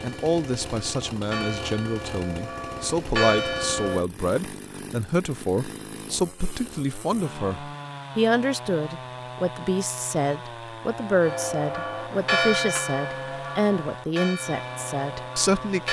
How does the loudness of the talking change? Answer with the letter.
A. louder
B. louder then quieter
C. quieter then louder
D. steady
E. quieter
D.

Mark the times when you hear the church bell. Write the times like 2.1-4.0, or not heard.
0.0-4.0, 11.2-15.8.